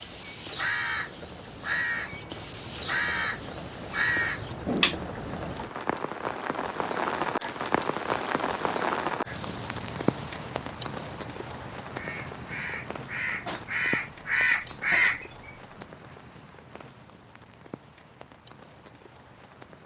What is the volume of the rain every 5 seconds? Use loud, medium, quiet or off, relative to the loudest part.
medium, loud, medium, quiet.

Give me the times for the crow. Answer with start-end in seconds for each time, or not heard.
0.0-5.5, 11.9-15.8.